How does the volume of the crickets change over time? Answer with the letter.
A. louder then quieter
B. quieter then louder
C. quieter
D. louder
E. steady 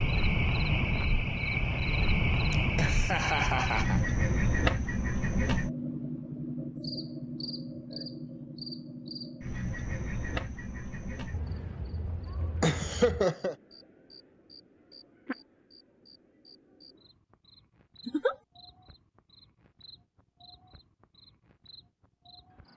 C.